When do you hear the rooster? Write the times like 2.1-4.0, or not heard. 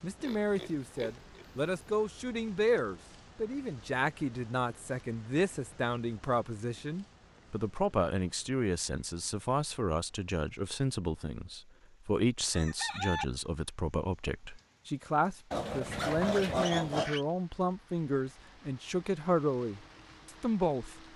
12.5-13.2.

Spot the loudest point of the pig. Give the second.
17 s.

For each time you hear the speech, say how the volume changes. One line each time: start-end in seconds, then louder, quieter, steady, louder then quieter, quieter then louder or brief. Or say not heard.
0.0-21.0 steady.